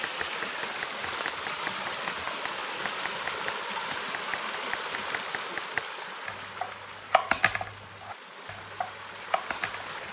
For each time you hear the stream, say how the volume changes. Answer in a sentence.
You can hear the stream from 0.0 to 10.0 s, getting quieter.